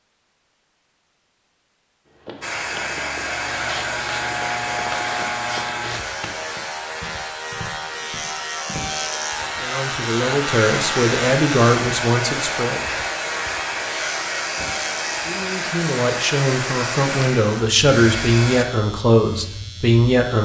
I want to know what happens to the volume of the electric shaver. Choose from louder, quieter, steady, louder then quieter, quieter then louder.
quieter.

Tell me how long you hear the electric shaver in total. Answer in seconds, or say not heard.
17 s.